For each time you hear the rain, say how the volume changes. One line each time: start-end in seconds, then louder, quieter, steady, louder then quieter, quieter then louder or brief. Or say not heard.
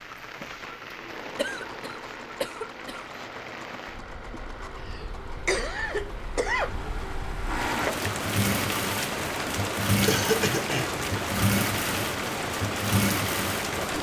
0.0-13.9 louder.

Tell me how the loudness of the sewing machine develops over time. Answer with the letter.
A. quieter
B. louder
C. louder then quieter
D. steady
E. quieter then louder
B.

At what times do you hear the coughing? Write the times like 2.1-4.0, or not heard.
1.4-3.0, 4.8-6.7, 10.1-10.9.